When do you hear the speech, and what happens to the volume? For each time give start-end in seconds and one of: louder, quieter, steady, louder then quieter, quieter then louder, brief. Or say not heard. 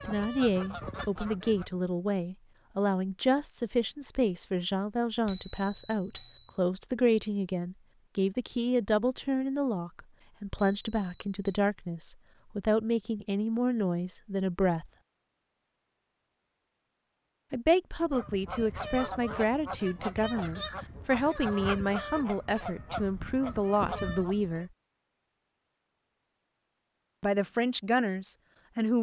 0.1-14.8 steady
17.5-24.7 steady
27.2-28.9 brief.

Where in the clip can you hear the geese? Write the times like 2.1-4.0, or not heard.
0.0-1.8, 18.0-24.6.